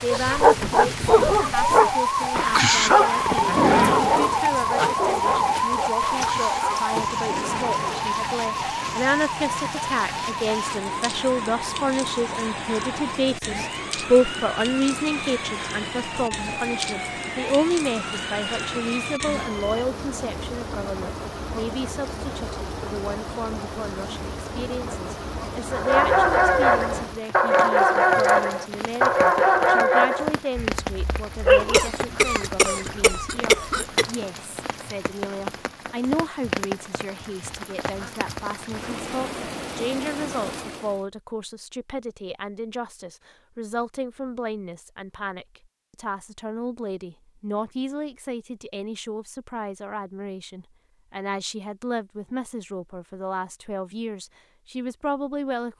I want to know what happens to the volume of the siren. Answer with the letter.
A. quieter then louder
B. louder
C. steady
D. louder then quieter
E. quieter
E.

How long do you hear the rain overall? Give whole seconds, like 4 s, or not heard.
41 s.